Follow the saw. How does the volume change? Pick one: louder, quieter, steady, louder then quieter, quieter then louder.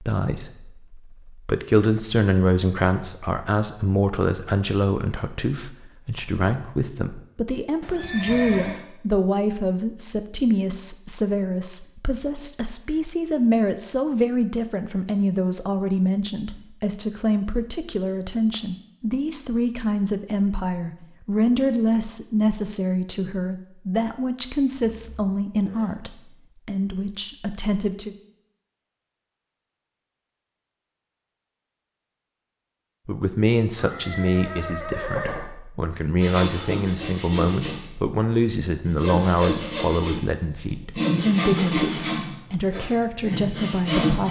louder then quieter.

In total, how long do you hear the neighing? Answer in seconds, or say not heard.
4 s.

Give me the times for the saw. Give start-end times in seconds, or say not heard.
36.2-44.2.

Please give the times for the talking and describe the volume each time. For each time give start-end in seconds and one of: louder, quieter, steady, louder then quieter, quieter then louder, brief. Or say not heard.
0.0-28.1 steady
33.0-44.2 steady.